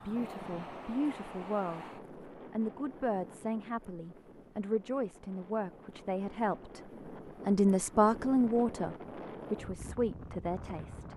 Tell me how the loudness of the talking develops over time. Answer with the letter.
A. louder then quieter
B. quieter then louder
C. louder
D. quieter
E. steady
A.